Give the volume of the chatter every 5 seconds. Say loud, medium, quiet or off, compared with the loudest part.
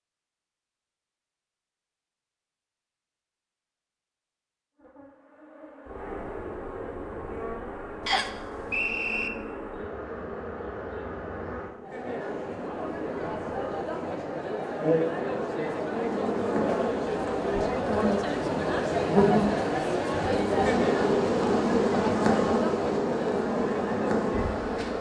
off, off, medium, loud, loud.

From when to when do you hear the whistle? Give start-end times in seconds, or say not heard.
8.1-9.3.